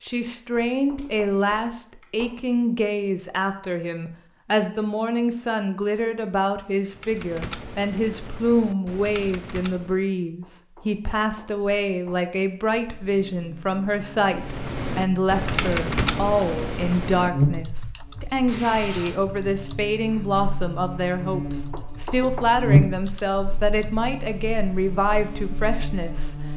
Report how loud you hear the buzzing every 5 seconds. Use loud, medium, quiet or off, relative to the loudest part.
off, off, quiet, loud, loud, medium.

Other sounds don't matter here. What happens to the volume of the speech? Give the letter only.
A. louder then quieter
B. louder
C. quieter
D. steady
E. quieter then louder
D.